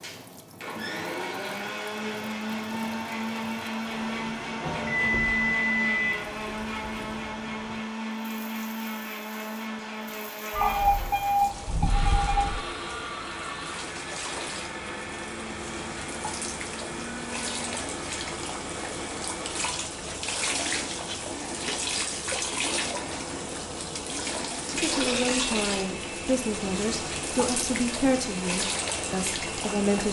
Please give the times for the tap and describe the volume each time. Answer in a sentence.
The tap can be heard from 0.0 to 30.0 s, getting louder.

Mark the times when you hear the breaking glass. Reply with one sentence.
You can't hear the breaking glass here.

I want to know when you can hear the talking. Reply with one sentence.
The talking can be heard from 24.8 to 30.0 s.